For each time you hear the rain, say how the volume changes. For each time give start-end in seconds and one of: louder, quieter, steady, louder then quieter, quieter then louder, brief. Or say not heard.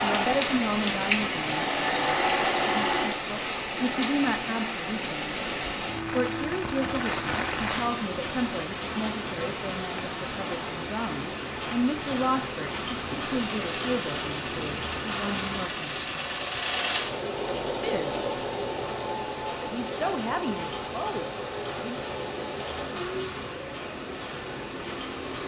0.0-25.4 quieter.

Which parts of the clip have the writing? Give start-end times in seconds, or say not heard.
not heard.